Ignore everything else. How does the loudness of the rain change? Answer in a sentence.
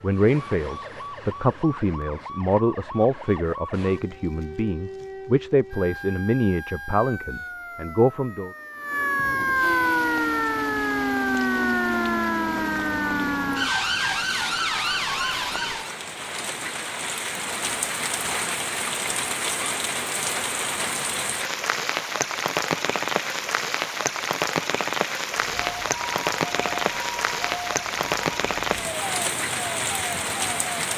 The loudness of the rain goes up.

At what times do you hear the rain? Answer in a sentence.
The rain can be heard from 9.8 to 30.9 s.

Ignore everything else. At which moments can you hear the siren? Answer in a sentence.
You can hear the siren from 0.0 to 15.9 s and from 25.4 to 30.9 s.